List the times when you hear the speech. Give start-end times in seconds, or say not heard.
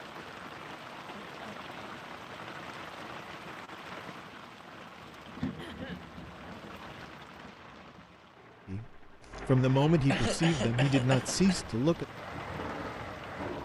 8.7-12.1.